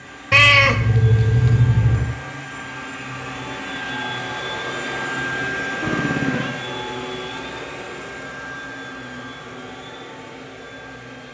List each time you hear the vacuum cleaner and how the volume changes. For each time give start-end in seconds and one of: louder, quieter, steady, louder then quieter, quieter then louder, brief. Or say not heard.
0.0-11.2 louder then quieter.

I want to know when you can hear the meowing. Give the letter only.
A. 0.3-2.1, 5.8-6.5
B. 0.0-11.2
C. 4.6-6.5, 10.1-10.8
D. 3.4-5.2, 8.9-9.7
A.